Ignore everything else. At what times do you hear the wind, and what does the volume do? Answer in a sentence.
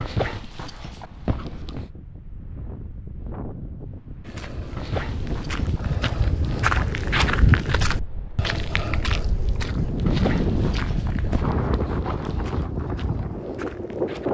You can hear the wind from 0.1 to 14.2 s, getting louder.